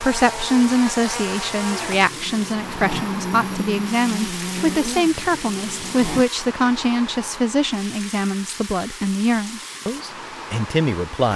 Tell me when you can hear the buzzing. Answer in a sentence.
The buzzing can be heard from 0.0 to 6.2 s.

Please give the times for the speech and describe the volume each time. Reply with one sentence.
You can hear the speech from 0.0 to 11.3 s, at a steady volume.